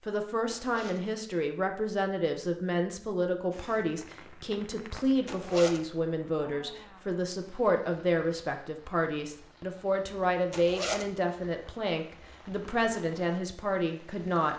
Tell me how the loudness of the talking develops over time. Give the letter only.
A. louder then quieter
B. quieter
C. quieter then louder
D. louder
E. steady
E.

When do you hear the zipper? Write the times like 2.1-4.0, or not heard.
0.5-1.1, 5.2-5.9, 10.5-11.2.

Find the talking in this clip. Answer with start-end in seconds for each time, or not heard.
0.1-14.5.